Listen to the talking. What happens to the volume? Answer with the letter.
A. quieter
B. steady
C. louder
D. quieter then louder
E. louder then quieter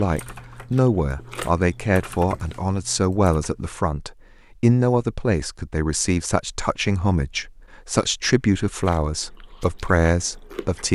B.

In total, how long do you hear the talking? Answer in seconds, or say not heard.
11 s.